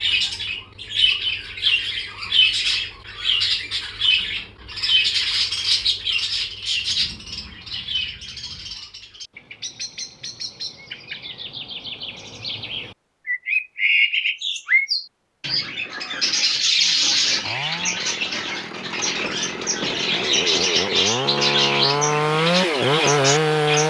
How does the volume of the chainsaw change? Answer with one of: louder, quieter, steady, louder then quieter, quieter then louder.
louder.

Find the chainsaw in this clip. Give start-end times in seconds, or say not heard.
16.8-23.8.